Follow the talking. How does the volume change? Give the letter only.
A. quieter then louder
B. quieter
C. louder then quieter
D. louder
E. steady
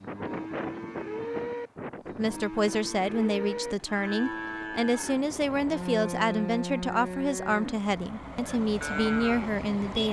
E.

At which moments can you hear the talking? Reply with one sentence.
You can hear the talking from 2.1 to 10.0 s.